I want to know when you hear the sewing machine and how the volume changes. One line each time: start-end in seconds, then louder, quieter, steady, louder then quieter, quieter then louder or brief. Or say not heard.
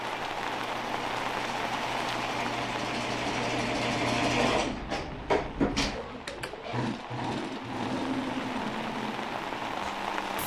0.0-10.4 louder then quieter.